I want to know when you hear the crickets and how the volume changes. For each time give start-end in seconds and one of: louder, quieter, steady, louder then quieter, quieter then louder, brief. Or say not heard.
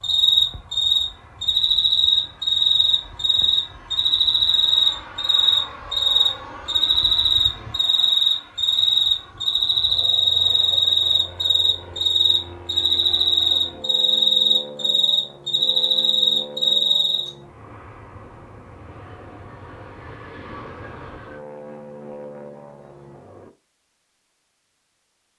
0.0-17.3 steady.